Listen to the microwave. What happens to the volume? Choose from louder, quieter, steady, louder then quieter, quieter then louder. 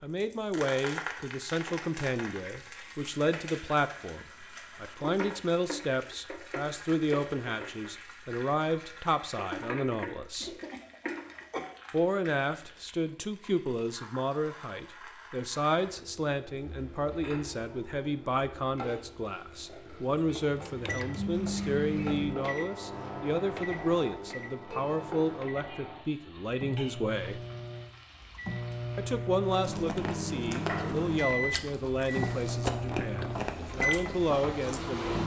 quieter then louder.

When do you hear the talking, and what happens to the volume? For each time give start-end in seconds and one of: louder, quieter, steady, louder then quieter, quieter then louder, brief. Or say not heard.
0.0-10.5 steady
11.9-27.4 steady
28.9-35.2 quieter then louder.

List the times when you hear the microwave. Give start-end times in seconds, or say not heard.
20.5-35.2.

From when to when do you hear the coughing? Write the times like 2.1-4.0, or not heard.
10.3-11.8.